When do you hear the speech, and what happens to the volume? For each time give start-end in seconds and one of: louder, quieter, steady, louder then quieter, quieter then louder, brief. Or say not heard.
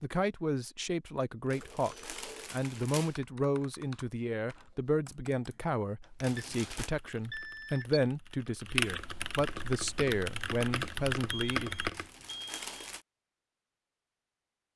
0.0-11.7 steady.